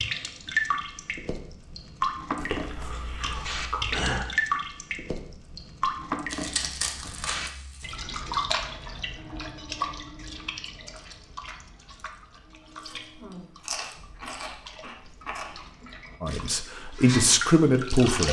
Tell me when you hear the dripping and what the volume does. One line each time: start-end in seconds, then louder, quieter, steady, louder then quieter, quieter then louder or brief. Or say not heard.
0.0-18.2 quieter then louder.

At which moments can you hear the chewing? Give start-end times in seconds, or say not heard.
2.4-4.2, 6.2-8.0, 12.8-15.6.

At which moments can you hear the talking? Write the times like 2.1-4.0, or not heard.
16.2-18.2.